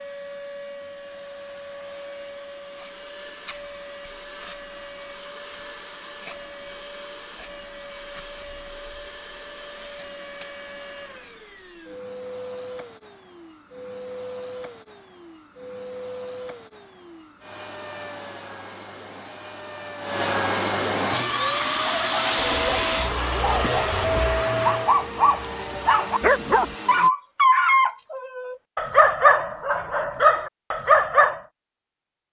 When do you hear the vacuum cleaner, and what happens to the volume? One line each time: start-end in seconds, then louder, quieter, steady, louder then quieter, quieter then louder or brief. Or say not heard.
0.0-27.1 louder.